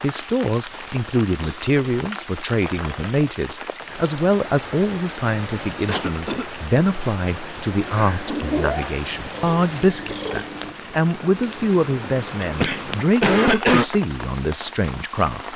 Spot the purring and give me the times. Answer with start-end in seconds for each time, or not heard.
7.7-10.8.